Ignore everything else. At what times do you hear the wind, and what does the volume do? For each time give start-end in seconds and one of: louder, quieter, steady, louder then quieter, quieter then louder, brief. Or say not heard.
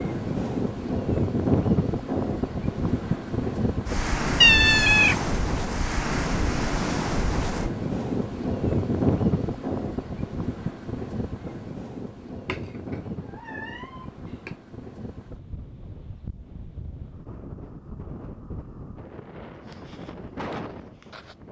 0.0-21.4 quieter.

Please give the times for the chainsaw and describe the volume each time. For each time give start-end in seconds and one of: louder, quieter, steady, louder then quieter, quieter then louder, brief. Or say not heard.
not heard.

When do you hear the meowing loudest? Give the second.
5 s.